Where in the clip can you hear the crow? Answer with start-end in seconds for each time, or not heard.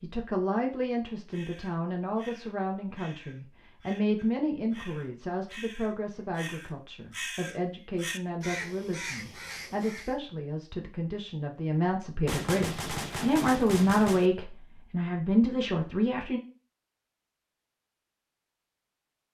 1.3-10.2.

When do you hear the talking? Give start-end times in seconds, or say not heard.
0.0-16.4.